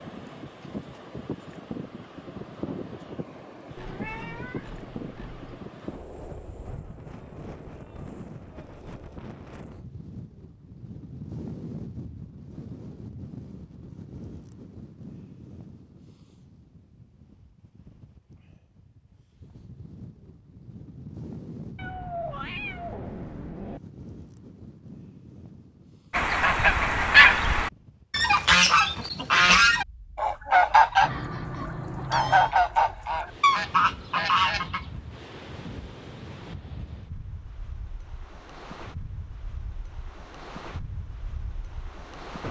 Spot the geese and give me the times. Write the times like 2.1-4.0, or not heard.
26.1-34.9.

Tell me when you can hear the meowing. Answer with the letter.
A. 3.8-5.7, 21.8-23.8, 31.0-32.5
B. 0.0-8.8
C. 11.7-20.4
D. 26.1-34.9
A.